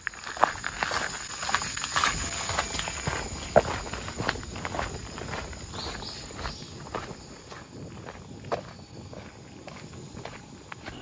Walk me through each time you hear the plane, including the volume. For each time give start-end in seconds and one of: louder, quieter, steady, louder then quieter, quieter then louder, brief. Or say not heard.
2.1-10.9 steady.